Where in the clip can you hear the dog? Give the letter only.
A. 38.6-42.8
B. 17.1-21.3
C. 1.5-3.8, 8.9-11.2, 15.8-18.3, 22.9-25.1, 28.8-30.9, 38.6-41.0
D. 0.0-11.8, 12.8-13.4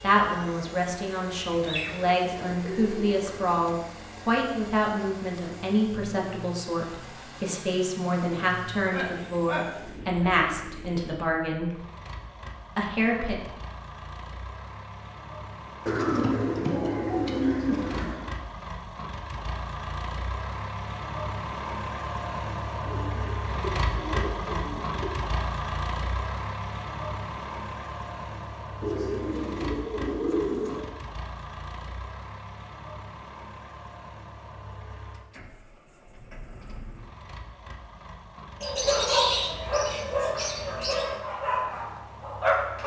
A.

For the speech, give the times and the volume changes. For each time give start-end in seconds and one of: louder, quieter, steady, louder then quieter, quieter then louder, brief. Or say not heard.
0.0-11.8 steady
12.8-13.4 brief.